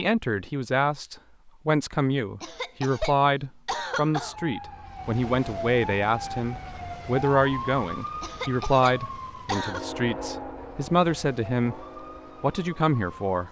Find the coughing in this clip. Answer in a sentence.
The coughing can be heard from 2.4 to 4.3 s and from 8.2 to 9.8 s.